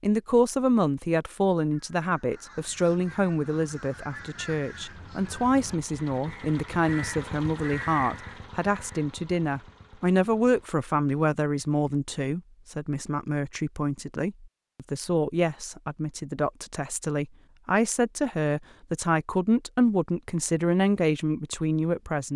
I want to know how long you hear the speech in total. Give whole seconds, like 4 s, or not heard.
22 s.